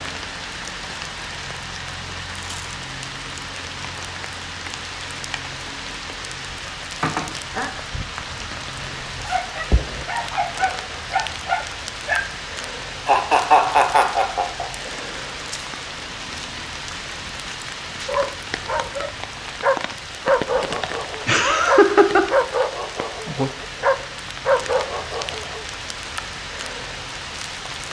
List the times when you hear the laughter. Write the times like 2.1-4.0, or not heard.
7.0-7.7, 13.1-14.7, 20.8-22.2.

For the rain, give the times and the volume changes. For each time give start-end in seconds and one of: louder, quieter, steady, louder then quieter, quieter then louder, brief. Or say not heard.
0.0-27.8 steady.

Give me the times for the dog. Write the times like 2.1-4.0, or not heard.
9.2-12.3, 18.1-25.6.